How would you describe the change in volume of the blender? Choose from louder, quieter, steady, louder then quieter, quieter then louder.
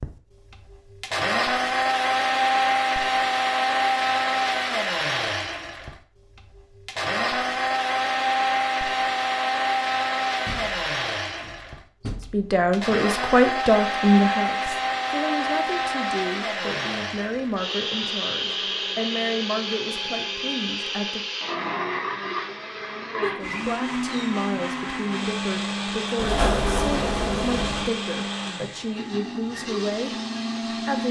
quieter.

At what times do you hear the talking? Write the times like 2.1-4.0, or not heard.
12.3-21.2, 23.4-31.0.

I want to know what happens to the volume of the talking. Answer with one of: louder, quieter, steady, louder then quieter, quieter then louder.
quieter.